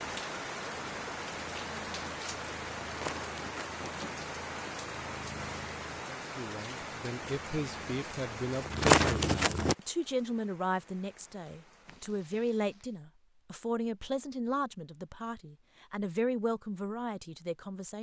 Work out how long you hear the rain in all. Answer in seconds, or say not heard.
13 s.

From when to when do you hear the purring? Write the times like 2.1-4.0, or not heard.
0.0-9.8.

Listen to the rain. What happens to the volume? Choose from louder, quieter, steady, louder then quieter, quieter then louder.
quieter.